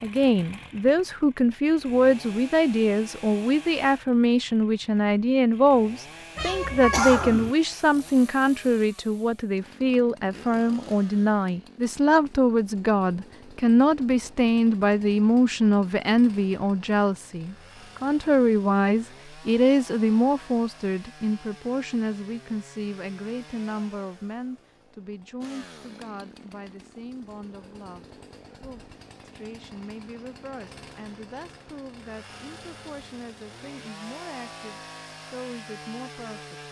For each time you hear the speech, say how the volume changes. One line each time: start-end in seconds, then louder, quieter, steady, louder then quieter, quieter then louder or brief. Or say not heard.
0.0-36.6 quieter.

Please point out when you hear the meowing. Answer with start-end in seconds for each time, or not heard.
6.3-7.5.